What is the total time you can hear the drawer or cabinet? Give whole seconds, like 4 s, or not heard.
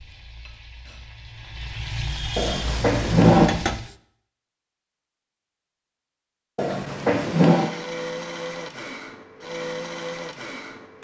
2 s.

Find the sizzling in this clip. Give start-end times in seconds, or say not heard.
0.0-4.0.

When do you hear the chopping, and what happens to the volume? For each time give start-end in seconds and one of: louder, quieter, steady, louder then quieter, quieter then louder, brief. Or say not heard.
not heard.